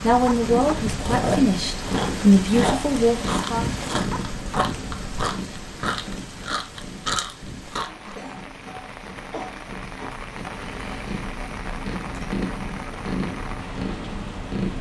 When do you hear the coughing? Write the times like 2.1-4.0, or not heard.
7.8-10.3.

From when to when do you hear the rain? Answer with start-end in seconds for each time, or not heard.
0.0-14.7.